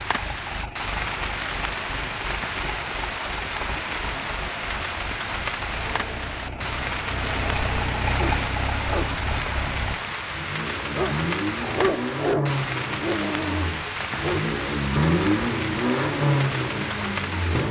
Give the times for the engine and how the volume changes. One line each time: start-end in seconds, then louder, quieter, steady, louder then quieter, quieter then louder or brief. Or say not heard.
0.0-17.6 louder.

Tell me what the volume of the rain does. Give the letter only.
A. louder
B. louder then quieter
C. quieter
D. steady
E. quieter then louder
D.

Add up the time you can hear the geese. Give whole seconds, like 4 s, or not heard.
not heard.